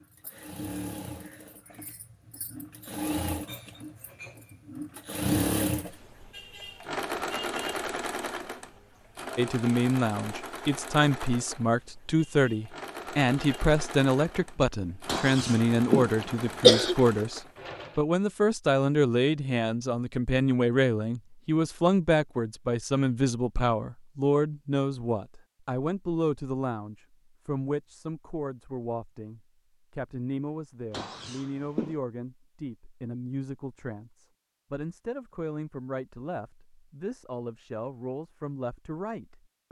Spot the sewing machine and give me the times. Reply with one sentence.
The sewing machine can be heard from 0.0 to 18.0 s.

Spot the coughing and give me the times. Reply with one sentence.
The coughing can be heard from 15.1 to 16.9 s and from 30.9 to 31.9 s.